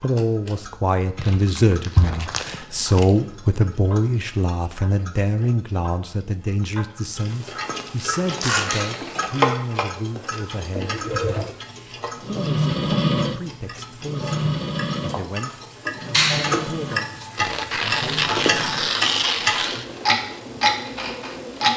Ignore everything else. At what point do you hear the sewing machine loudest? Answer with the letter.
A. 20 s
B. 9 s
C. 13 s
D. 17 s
C.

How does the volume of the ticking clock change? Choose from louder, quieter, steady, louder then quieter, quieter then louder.
louder.